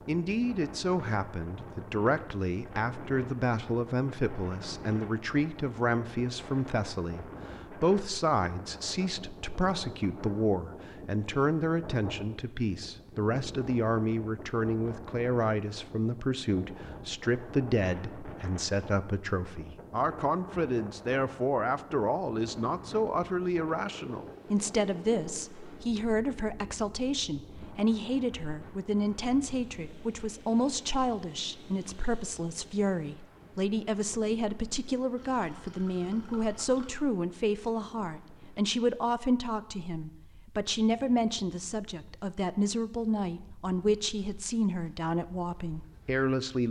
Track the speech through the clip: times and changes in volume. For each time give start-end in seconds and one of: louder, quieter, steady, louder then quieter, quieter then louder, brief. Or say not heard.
0.1-46.6 steady.